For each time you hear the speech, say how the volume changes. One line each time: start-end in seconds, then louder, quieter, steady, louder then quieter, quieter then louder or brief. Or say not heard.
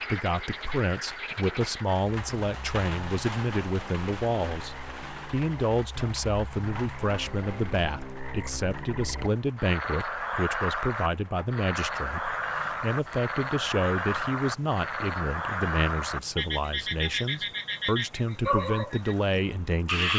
0.1-20.1 steady.